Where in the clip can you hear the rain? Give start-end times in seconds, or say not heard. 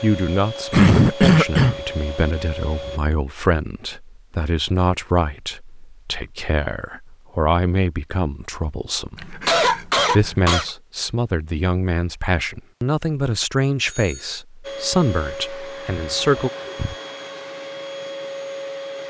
not heard.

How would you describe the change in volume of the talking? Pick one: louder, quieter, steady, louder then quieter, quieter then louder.
steady.